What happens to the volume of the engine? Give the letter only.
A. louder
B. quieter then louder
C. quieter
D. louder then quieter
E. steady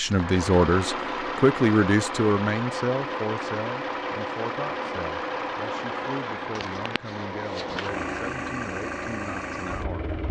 E.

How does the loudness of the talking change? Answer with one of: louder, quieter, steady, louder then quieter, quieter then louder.
quieter.